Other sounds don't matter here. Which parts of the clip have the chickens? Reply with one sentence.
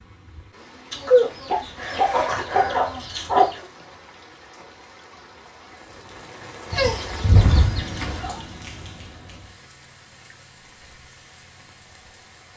The chickens can be heard from 0.9 to 3.6 s and from 6.7 to 8.4 s.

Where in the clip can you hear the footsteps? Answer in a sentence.
The footsteps can't be heard in this clip.